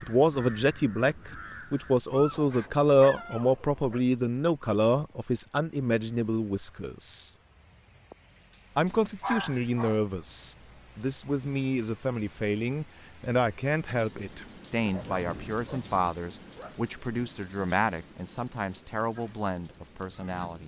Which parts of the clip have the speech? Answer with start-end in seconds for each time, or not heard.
0.0-7.3, 8.8-20.6.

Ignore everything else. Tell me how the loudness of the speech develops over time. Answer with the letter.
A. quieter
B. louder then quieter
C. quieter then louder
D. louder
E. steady
A.